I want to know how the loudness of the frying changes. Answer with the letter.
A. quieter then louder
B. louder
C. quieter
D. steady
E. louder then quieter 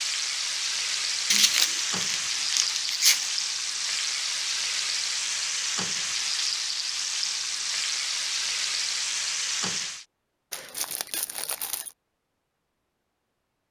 D.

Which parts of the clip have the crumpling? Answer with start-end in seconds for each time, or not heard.
1.3-3.3, 10.5-11.9.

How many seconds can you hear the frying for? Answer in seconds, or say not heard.
10 s.